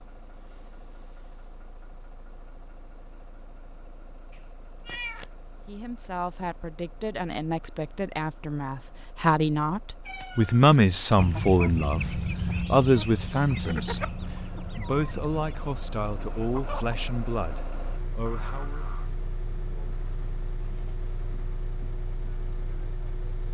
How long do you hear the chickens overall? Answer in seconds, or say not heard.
6 s.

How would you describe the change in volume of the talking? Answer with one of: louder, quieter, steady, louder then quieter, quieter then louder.
louder then quieter.